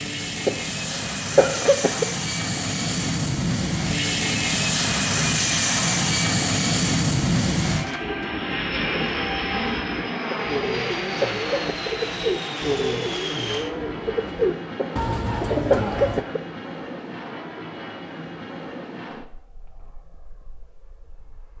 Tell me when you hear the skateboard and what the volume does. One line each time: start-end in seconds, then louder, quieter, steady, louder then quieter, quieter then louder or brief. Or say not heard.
not heard.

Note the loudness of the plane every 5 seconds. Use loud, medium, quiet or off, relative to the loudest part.
loud, loud, medium, quiet, quiet.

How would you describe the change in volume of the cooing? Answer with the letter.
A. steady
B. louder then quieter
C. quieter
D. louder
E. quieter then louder
D.